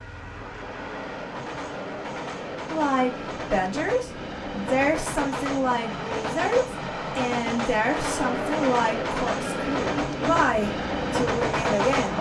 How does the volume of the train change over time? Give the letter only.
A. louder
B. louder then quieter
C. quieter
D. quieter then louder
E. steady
A.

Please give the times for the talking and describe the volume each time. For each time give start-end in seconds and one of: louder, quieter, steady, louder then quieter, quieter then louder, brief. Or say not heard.
2.7-12.1 steady.